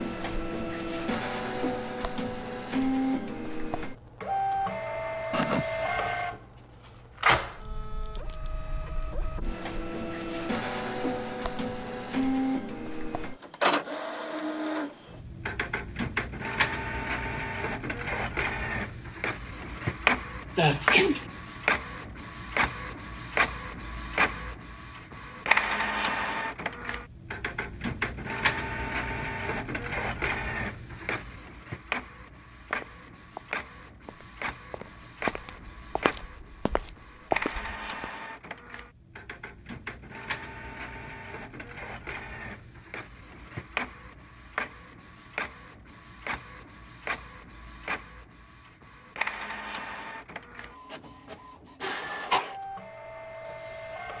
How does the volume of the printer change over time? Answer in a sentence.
The volume of the printer goes down.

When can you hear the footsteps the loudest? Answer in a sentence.
The loudest moment of the footsteps is at 37 seconds.